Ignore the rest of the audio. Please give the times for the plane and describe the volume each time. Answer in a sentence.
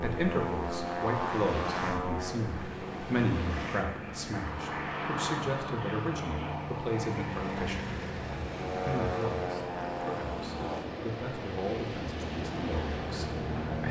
You can hear the plane from 0.0 to 13.8 s, getting quieter.